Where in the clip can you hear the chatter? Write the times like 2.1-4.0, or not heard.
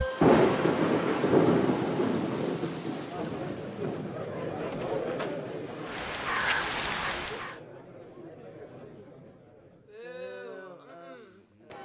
3.0-11.8.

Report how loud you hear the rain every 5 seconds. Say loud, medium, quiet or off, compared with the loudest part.
loud, medium, off.